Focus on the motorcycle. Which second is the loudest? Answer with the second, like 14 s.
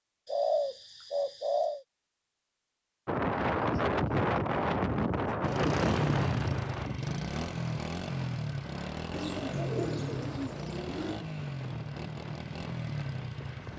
6 s.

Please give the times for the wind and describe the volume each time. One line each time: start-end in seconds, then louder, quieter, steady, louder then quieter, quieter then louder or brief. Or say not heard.
3.0-13.7 quieter.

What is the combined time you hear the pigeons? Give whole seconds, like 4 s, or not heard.
4 s.